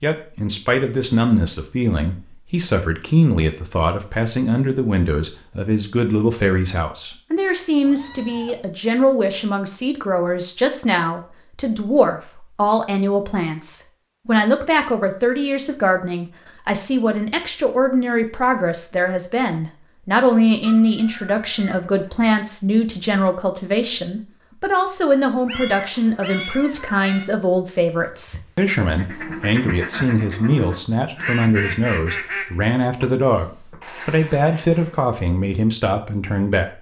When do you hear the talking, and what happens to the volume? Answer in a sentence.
The talking can be heard from 0.0 to 36.7 s, at a steady volume.